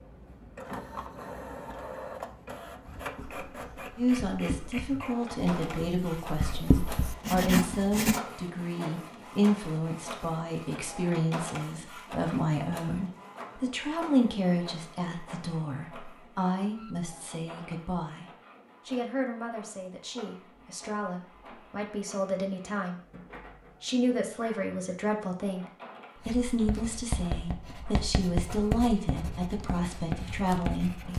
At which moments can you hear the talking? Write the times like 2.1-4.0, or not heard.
4.0-18.2, 18.9-23.0, 23.8-31.1.